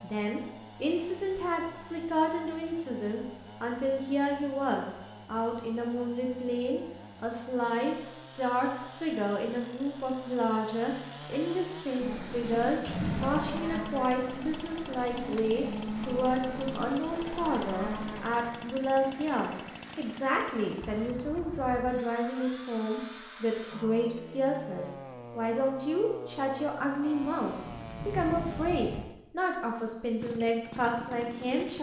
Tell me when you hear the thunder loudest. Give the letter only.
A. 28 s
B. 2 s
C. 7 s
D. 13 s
D.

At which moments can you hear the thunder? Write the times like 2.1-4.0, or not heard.
12.8-13.8, 27.2-29.0.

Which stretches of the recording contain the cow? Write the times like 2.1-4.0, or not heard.
12.0-18.3.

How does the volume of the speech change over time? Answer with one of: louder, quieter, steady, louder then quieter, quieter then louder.
steady.